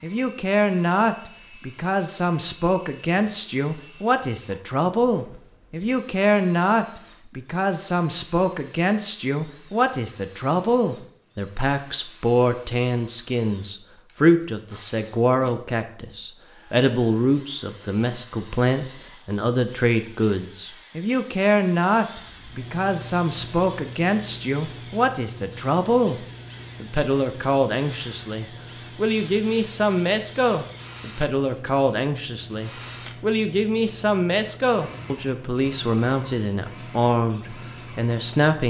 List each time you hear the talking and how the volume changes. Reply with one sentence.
The talking can be heard from 0.0 to 38.6 s, at a steady volume.